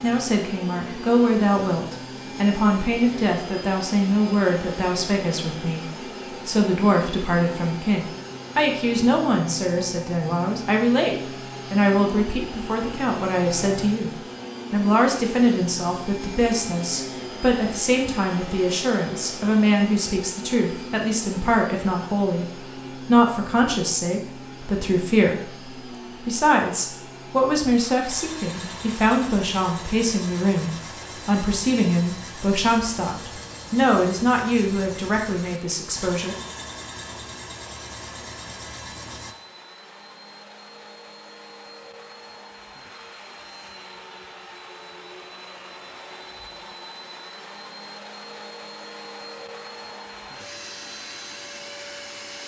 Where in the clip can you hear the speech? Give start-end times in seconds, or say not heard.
0.0-22.4, 23.1-36.4.